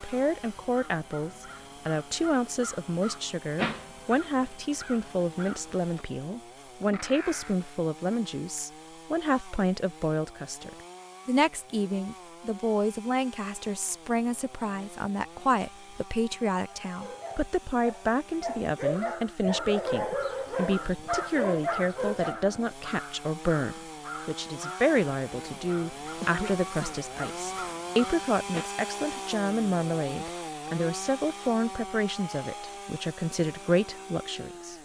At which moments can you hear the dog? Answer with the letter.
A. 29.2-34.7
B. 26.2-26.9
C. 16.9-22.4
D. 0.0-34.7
C.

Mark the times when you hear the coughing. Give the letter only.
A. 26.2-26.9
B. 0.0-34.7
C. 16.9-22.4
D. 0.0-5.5
A.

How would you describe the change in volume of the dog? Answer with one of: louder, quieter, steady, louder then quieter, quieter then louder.
louder.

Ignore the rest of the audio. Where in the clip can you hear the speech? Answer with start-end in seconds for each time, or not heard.
0.0-34.7.